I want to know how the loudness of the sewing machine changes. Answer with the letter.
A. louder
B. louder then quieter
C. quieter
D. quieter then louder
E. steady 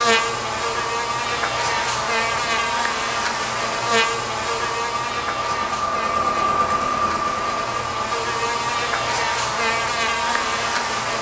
B.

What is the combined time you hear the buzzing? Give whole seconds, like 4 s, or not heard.
11 s.